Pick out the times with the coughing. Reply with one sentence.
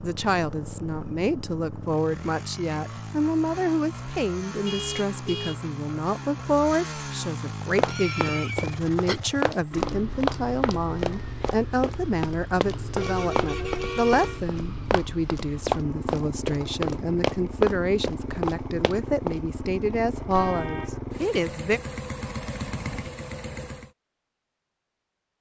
The coughing can be heard from 7.8 to 9.2 s.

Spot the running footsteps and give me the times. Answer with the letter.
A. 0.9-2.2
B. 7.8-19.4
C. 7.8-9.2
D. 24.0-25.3
B.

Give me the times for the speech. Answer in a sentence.
You can hear the speech from 0.0 to 21.8 s.